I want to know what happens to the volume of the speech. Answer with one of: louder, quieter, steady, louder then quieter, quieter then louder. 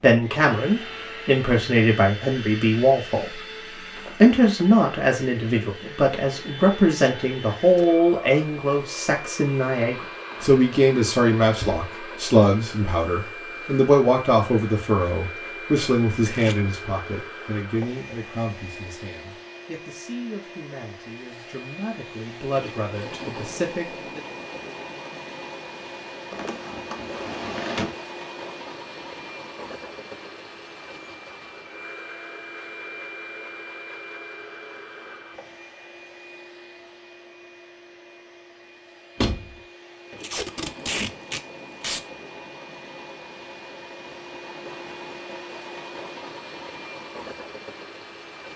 quieter.